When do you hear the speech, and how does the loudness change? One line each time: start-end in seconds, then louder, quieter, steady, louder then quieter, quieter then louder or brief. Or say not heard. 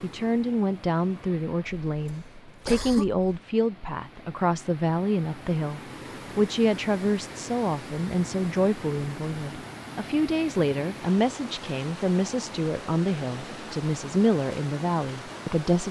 0.0-15.8 steady.